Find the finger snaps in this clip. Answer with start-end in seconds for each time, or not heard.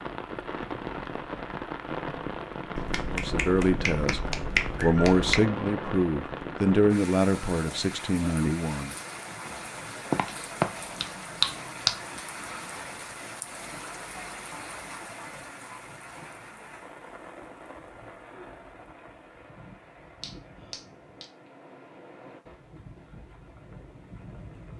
2.8-5.5, 10.1-11.9, 20.2-21.2.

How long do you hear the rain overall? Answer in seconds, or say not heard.
25 s.